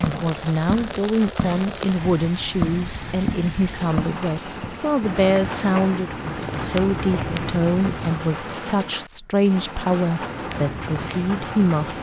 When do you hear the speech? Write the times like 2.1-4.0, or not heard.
0.0-11.9.